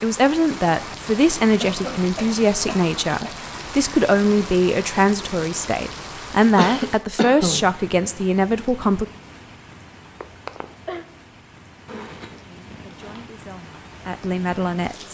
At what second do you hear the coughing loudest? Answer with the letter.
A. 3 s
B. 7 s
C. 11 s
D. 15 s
B.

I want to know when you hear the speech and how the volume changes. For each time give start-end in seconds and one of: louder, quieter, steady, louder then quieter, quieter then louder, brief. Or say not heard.
0.0-9.1 steady
12.4-15.0 brief.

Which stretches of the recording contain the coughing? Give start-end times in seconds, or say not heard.
1.6-3.4, 6.5-7.7, 10.2-11.1.